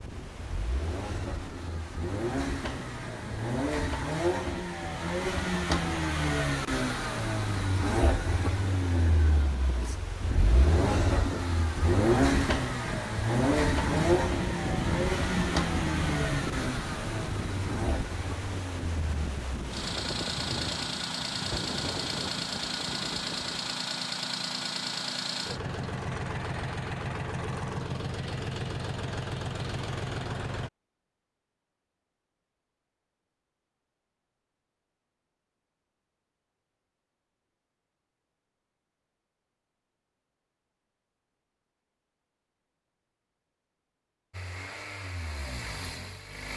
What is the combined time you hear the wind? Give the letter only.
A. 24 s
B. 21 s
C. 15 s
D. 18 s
A.